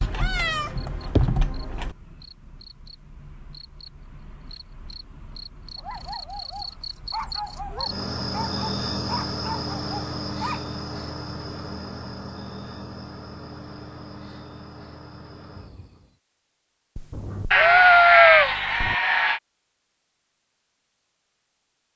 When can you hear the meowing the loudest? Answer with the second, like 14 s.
18 s.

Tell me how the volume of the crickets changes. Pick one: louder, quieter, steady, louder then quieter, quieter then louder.
louder then quieter.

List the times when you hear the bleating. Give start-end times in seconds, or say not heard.
17.5-19.4.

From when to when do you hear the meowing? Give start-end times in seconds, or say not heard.
0.0-1.9, 16.9-18.9.